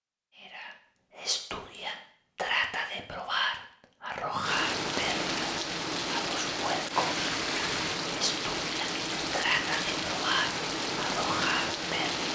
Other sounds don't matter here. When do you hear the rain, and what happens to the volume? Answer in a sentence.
You can hear the rain from 4.4 to 12.3 s, at a steady volume.